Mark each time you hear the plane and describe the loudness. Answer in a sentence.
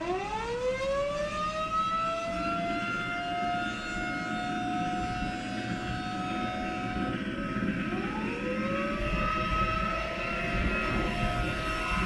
You can hear the plane from 0.0 to 12.0 s, getting louder.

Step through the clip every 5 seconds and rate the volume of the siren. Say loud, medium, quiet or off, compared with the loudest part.
loud, medium, medium.